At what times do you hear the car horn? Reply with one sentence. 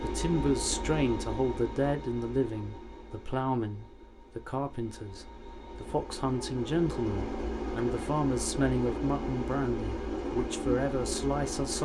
You can't hear the car horn here.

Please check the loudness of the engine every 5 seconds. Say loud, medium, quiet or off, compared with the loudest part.
medium, loud, loud.